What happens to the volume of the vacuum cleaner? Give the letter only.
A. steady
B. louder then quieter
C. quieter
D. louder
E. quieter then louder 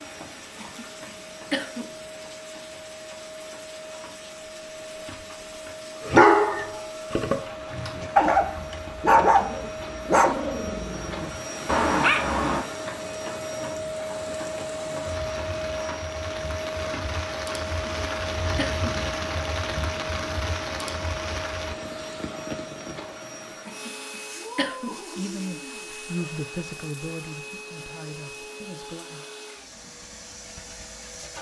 B.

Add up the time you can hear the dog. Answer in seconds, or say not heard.
7 s.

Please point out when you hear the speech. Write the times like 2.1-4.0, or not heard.
25.0-29.2.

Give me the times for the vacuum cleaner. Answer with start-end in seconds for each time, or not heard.
0.0-31.3.